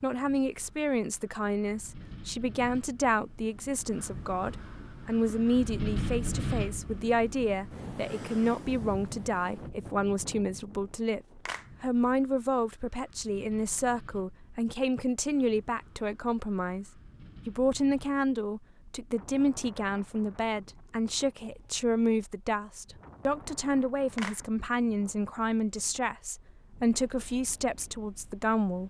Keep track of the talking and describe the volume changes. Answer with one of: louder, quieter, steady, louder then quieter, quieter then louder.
steady.